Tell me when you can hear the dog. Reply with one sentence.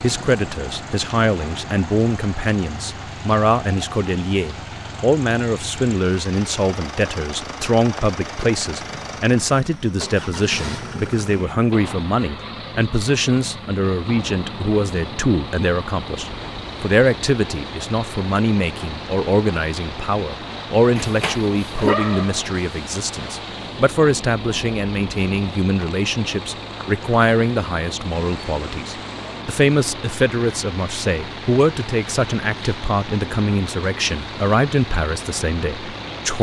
You can hear the dog from 20.9 to 22.4 s.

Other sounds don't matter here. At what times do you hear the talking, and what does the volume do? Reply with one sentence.
The talking can be heard from 0.0 to 36.3 s, at a steady volume.